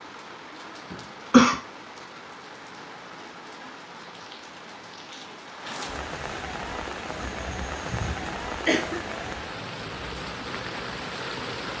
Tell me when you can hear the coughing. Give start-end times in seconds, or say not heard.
0.9-1.6, 7.2-9.0.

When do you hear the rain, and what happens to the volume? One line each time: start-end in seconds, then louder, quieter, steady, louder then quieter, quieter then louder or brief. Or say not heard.
0.0-11.7 louder.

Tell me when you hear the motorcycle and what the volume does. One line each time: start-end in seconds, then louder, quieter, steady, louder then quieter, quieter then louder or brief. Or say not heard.
not heard.